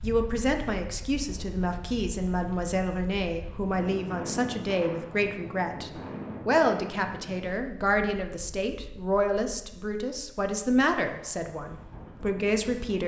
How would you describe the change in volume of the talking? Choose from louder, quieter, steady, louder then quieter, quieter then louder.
steady.